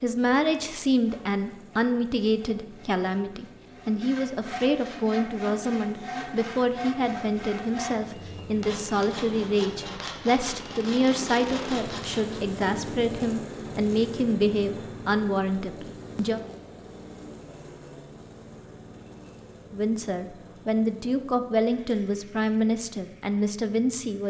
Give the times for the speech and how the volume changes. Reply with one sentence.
The speech can be heard from 0.0 to 16.4 s, at a steady volume; and from 19.7 to 24.2 s, at a steady volume.